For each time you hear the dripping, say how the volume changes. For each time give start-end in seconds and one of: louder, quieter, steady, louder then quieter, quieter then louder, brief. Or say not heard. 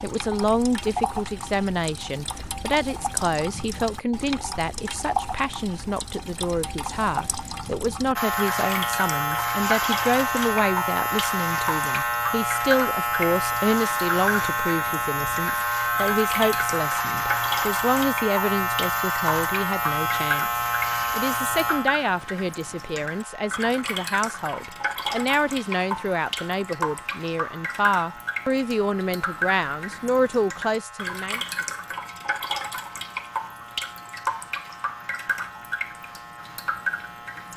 0.0-37.5 steady.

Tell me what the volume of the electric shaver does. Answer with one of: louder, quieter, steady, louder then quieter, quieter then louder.
quieter.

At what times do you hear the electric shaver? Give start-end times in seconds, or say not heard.
8.2-37.5.